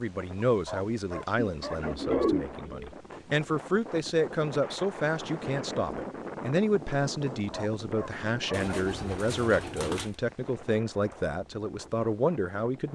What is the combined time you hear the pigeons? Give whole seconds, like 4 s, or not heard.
3 s.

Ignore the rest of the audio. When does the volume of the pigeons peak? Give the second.
2 s.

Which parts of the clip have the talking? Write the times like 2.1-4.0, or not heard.
0.0-12.9.